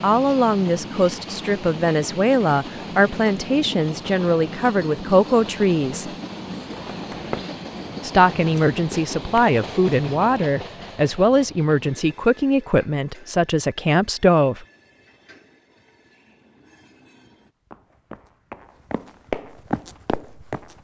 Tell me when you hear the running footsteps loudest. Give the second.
19 s.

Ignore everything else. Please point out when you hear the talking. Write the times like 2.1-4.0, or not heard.
0.0-6.1, 8.0-14.7.